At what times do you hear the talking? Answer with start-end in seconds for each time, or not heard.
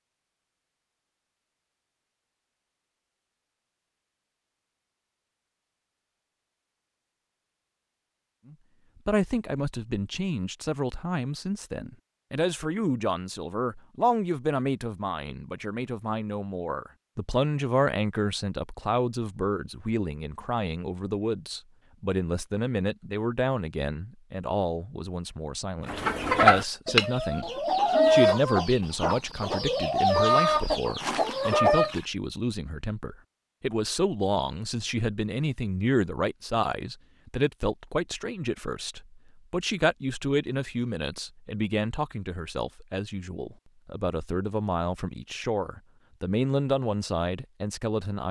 8.5-48.2.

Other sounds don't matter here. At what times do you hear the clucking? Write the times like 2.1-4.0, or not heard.
25.9-32.0.